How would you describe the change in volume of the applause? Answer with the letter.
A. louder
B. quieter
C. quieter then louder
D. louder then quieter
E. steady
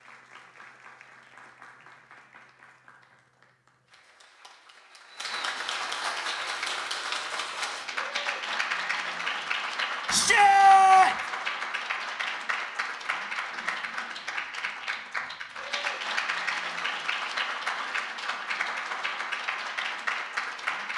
A.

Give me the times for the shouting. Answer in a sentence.
You can hear the shouting from 10.1 to 11.2 s.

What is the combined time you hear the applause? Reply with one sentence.
The applause can be heard for 21 seconds in total.